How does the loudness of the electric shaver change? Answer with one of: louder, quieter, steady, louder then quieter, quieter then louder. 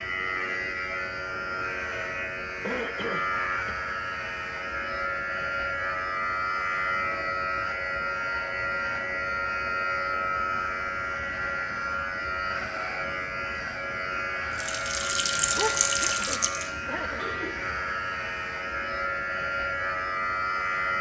steady.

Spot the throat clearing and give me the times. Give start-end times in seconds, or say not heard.
2.6-3.8, 15.5-17.2.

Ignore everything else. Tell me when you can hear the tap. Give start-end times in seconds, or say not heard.
14.6-16.7.